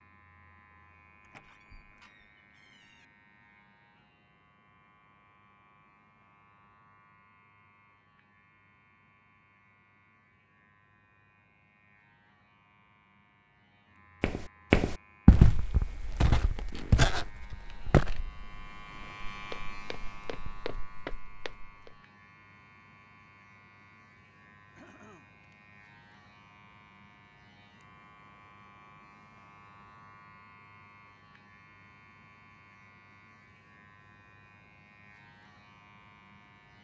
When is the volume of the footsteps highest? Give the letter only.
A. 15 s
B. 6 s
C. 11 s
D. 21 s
A.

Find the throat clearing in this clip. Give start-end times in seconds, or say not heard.
24.8-25.6.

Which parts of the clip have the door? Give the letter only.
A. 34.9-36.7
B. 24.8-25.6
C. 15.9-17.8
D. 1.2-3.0
D.